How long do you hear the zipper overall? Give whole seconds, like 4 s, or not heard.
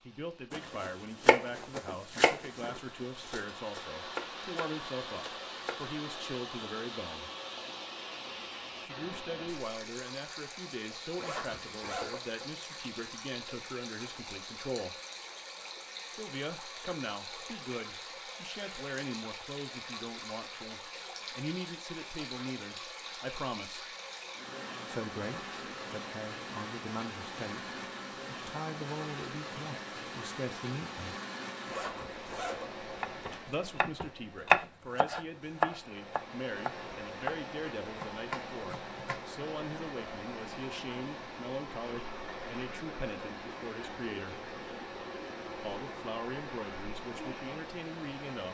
4 s.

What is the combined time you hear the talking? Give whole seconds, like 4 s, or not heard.
41 s.